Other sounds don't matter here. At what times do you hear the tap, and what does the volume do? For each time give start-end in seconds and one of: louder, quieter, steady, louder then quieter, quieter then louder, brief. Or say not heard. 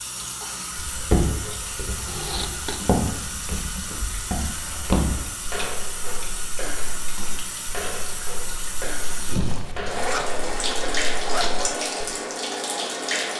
0.0-13.3 louder.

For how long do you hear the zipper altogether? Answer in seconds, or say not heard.
3 s.